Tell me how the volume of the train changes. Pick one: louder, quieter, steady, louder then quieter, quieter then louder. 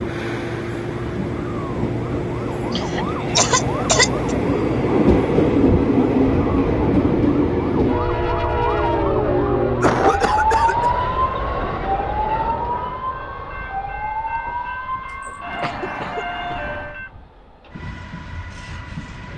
louder then quieter.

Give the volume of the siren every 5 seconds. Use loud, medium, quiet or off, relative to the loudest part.
medium, loud, loud, medium.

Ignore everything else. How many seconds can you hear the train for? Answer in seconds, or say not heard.
19 s.